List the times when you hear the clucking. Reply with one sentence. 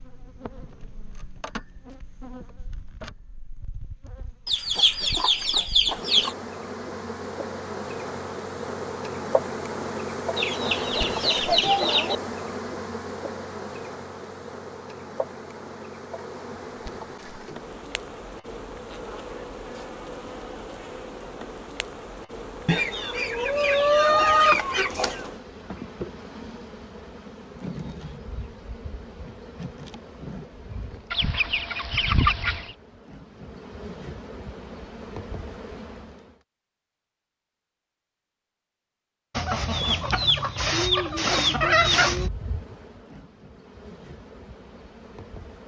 You can hear the clucking from 4.5 to 6.3 s, from 10.3 to 12.2 s, from 22.6 to 25.3 s, from 31.1 to 32.8 s and from 39.4 to 42.3 s.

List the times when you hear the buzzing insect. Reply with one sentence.
The buzzing insect can be heard from 0.0 to 36.4 s and from 42.0 to 45.6 s.